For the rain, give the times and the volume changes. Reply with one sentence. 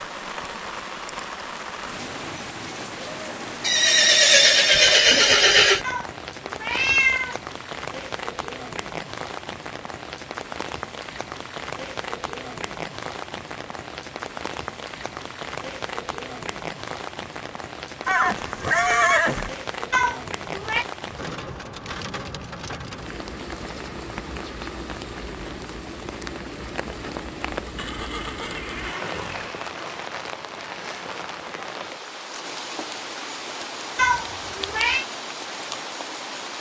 You can hear the rain from 0.0 to 36.5 s, at a steady volume.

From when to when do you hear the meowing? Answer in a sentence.
The meowing can be heard from 5.8 to 7.4 s, from 19.9 to 20.9 s and from 34.0 to 35.0 s.